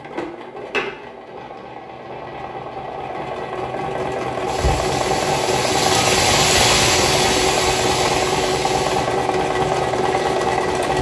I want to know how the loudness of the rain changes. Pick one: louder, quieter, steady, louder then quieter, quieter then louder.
louder then quieter.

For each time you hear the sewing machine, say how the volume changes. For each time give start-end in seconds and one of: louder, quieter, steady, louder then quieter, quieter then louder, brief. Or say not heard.
0.0-10.9 louder.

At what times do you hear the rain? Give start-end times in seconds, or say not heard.
4.5-10.9.